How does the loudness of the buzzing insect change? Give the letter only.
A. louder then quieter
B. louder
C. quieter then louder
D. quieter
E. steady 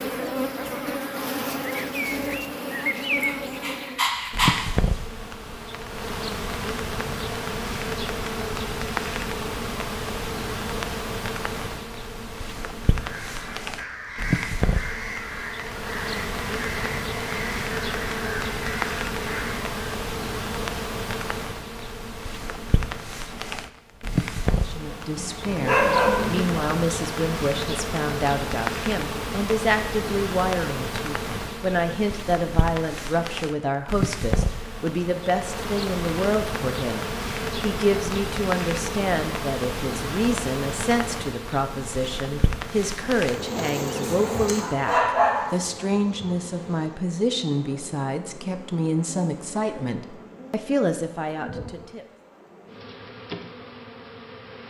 D.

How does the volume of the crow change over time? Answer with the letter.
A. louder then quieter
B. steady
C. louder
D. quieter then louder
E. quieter
B.